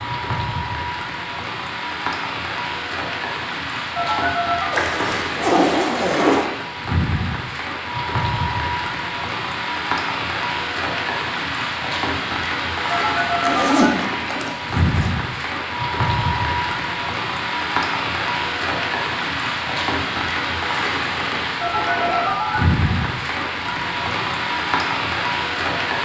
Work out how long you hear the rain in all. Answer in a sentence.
The rain can be heard for 26 seconds in total.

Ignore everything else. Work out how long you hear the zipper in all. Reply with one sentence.
You can hear the zipper for 4 seconds altogether.